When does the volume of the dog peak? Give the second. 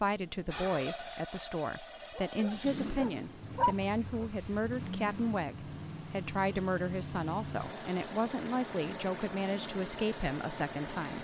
4 s.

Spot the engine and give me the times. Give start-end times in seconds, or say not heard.
0.0-11.2.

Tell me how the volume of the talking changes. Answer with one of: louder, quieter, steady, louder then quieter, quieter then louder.
steady.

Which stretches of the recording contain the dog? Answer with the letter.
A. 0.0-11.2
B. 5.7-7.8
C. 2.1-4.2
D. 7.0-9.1
C.